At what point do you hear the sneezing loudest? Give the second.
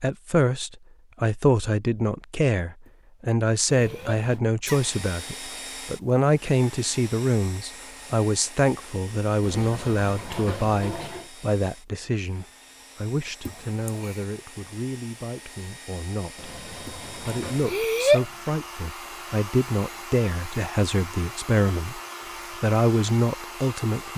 18 s.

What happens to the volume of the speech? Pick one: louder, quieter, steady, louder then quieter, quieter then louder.
quieter then louder.